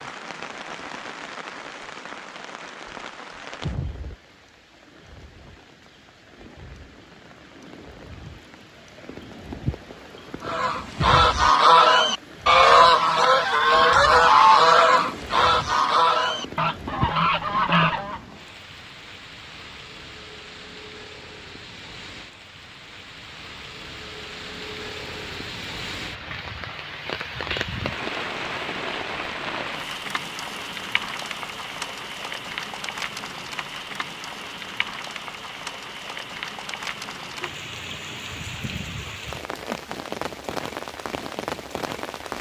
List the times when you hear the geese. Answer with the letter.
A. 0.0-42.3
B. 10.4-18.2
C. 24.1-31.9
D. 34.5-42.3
B.